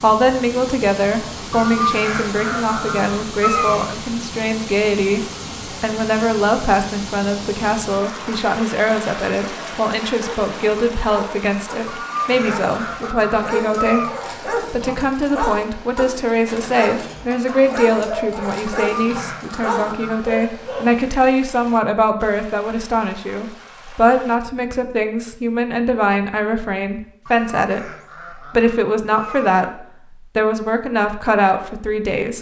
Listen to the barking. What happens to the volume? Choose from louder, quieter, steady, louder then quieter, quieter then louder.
louder.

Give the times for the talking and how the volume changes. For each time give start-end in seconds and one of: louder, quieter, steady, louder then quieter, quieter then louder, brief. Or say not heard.
0.0-32.3 steady.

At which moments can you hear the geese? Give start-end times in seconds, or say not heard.
1.5-3.9, 11.8-14.2, 18.6-20.4, 27.2-29.6.